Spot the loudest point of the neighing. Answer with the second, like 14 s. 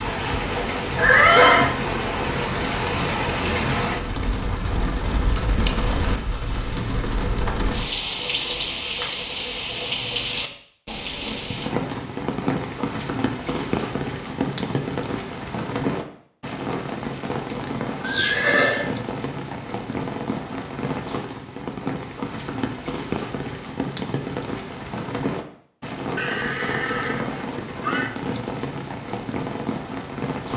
1 s.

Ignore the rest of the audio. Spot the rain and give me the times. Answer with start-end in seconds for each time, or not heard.
0.0-30.5.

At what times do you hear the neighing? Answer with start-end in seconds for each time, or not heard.
0.9-1.7, 18.0-18.9, 26.1-28.1.